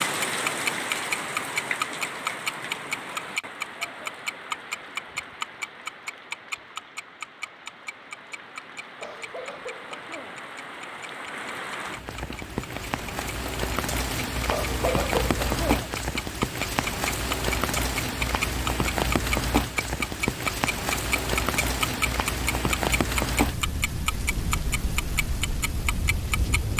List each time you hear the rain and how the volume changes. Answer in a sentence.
You can hear the rain from 0.0 to 26.7 s, getting quieter then louder.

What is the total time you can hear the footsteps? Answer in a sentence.
You can't hear the footsteps here.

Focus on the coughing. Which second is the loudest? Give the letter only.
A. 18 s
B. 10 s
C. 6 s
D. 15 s
D.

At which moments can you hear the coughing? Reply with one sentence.
The coughing can be heard from 9.0 to 10.4 s and from 14.5 to 15.9 s.